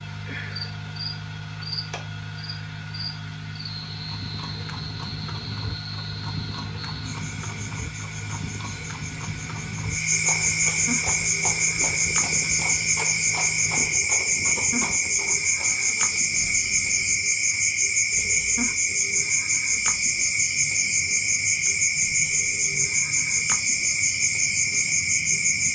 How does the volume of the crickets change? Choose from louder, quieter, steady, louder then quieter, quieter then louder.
louder.